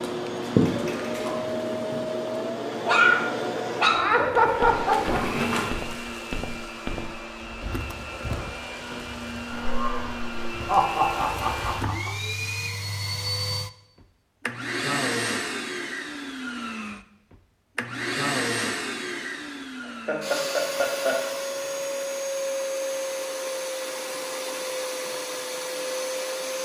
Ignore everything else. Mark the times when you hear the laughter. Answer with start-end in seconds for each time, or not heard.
3.9-5.2, 9.5-12.1, 19.8-21.2.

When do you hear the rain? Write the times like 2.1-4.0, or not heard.
not heard.